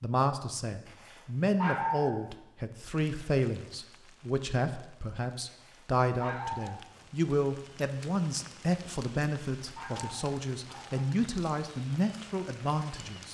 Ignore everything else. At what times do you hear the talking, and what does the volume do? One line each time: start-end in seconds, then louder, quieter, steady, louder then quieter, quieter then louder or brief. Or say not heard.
0.0-13.3 steady.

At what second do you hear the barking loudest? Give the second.
2 s.